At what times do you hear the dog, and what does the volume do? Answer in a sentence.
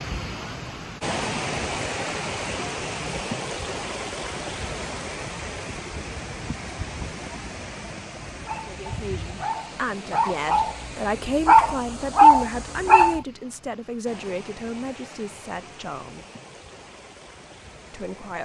The dog can be heard from 8.4 to 13.2 s, getting louder.